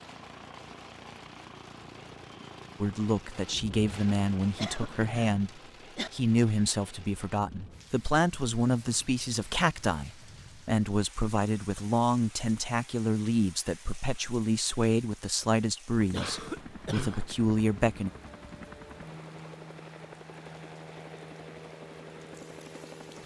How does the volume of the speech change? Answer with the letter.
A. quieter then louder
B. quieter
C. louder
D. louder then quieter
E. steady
E.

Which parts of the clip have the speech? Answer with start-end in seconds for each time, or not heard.
2.8-18.1.